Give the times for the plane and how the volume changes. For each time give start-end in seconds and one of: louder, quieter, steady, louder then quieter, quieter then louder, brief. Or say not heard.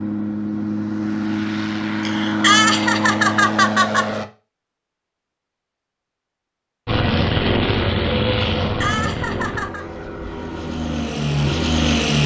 0.0-4.2 steady
6.8-12.2 quieter then louder.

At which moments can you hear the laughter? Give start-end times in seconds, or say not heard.
2.0-4.2, 8.6-9.8.